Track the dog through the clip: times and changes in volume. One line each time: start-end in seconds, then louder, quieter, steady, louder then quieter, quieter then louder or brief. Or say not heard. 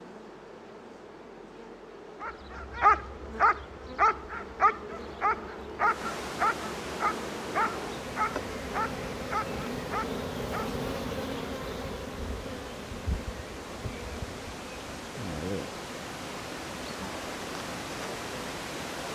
2.2-10.7 quieter.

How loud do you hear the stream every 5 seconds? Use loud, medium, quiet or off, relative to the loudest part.
off, loud, medium, loud.